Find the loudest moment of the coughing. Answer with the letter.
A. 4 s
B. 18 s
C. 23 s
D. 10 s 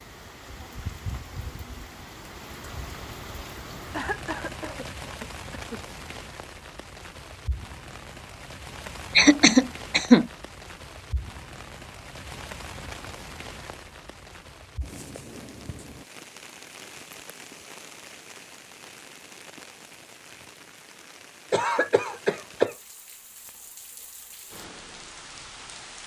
D.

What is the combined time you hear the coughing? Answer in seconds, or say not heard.
5 s.